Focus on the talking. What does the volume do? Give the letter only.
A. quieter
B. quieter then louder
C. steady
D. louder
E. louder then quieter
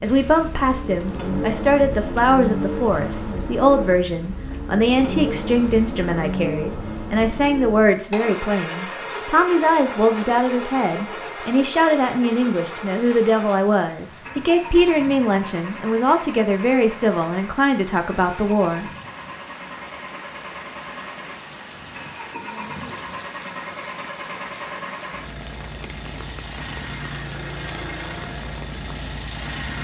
C.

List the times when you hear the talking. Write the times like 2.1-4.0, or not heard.
0.0-18.9.